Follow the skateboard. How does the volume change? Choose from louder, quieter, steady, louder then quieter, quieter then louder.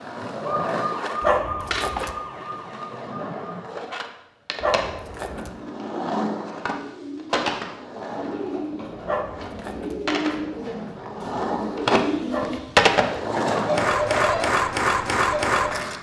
louder.